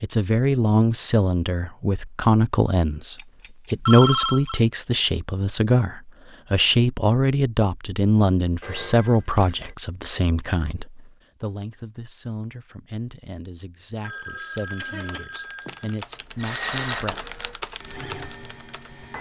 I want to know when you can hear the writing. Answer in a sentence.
The writing can't be heard in this clip.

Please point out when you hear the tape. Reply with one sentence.
The tape can't be heard in this clip.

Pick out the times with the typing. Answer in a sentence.
You can hear the typing from 14.6 to 19.1 s.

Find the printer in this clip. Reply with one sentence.
The printer can be heard from 16.4 to 19.1 s.